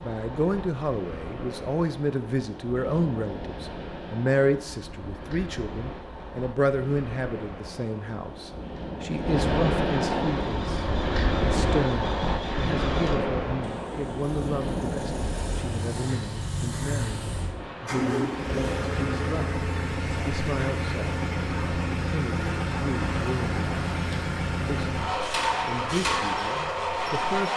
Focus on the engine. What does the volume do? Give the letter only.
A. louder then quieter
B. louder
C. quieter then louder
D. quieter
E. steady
B.